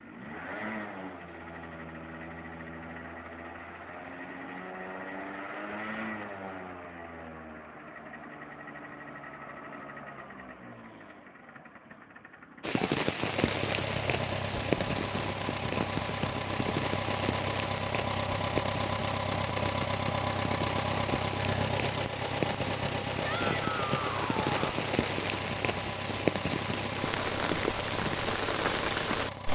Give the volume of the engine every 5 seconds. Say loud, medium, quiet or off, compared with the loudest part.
medium, medium, medium, loud, loud, medium.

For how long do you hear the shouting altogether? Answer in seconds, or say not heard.
2 s.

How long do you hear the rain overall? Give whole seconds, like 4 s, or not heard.
17 s.